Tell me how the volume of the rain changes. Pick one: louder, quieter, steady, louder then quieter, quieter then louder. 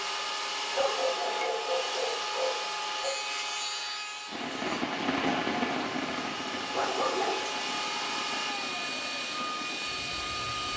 quieter.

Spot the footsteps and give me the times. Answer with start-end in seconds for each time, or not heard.
not heard.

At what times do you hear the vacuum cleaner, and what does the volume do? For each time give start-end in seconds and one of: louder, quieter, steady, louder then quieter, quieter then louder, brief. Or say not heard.
0.0-10.7 quieter then louder.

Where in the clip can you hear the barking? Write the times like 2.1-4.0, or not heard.
0.7-3.2, 6.5-7.5.